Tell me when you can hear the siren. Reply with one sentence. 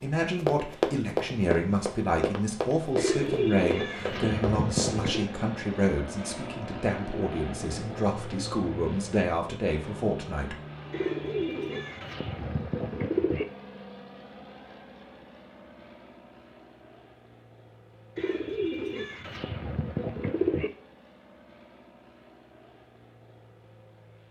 The siren can't be heard in this clip.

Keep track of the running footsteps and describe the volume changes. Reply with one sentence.
The loudness of the running footsteps goes down.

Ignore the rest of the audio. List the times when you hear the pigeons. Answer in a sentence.
You can hear the pigeons from 3.0 to 5.2 s, from 10.9 to 13.4 s and from 18.1 to 20.7 s.